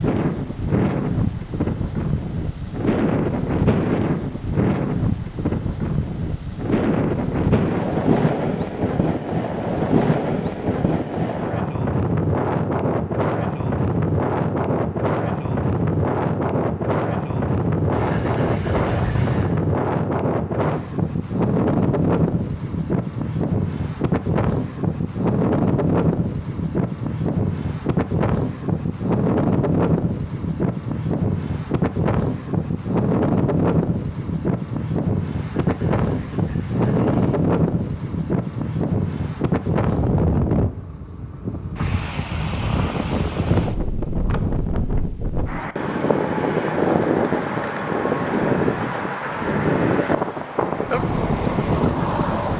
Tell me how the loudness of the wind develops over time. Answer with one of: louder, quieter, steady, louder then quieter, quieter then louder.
steady.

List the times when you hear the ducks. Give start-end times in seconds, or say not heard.
17.9-19.5, 35.4-37.4.